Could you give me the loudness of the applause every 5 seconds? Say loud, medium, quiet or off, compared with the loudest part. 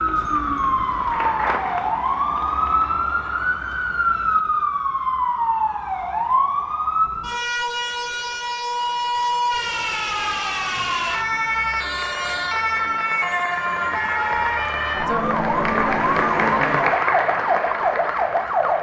medium, off, medium, loud.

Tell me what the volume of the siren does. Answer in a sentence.
The loudness of the siren stays about the same.